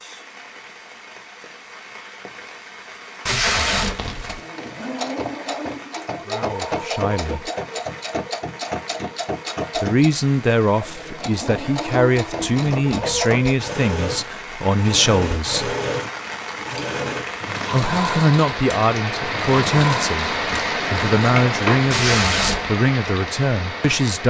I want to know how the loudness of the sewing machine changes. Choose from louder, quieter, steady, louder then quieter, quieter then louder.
steady.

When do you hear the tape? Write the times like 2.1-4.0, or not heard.
3.2-4.4, 12.3-13.2, 21.9-22.8.